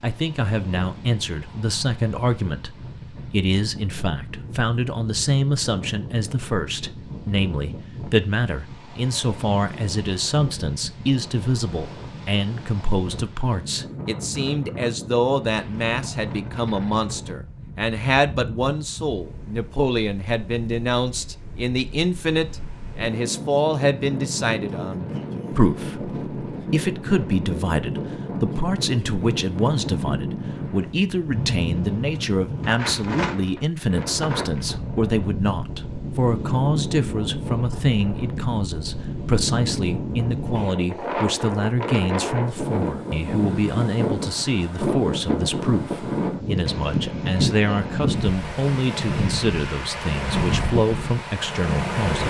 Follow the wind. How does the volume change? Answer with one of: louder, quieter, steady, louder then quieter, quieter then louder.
louder.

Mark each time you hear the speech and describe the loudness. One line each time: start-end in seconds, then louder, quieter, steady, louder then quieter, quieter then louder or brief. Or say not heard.
0.0-52.2 steady.